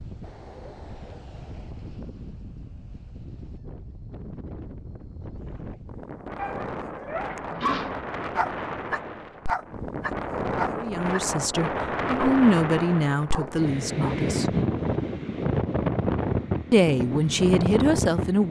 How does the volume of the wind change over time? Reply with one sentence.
The volume of the wind goes up.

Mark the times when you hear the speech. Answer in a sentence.
You can hear the speech from 10.8 to 14.5 s and from 16.7 to 18.4 s.